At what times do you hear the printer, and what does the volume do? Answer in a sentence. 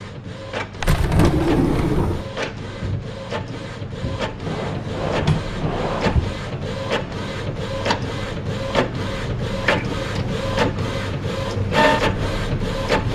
The printer can be heard from 0.0 to 13.1 s, getting louder.